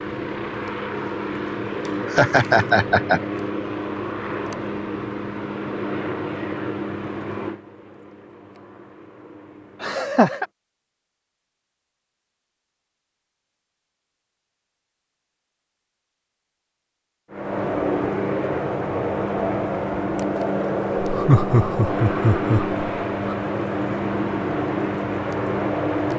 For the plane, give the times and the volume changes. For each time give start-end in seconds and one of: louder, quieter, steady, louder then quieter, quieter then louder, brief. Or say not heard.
0.0-10.5 quieter
17.3-26.1 steady.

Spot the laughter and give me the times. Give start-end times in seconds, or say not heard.
1.9-3.2, 9.8-10.4, 20.9-23.4.